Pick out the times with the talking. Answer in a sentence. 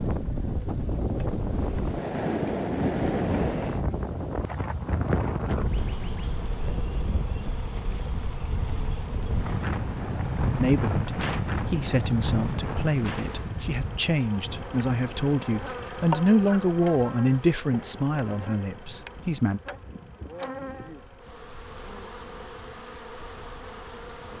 You can hear the talking from 10.6 to 19.6 s.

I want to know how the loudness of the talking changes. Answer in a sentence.
The volume of the talking goes up, then down.